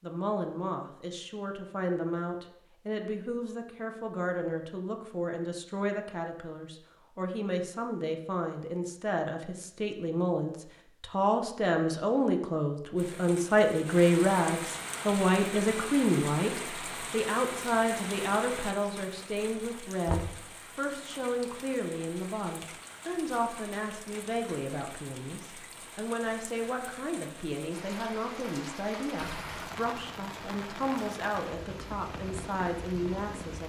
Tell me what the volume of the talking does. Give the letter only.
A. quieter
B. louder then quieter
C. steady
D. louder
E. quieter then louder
B.